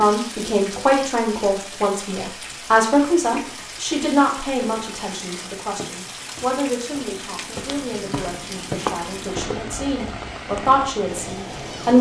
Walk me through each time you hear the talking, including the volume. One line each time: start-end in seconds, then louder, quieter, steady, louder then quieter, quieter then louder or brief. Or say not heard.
0.0-11.9 quieter then louder.